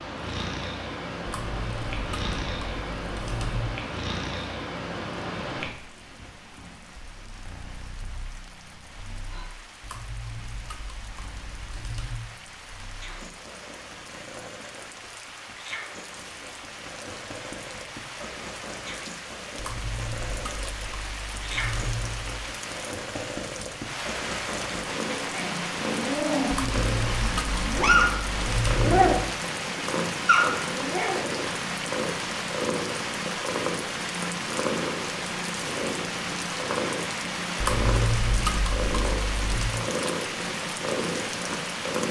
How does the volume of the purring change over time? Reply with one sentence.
The volume of the purring goes down, then up.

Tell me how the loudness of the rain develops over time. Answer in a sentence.
The volume of the rain goes up.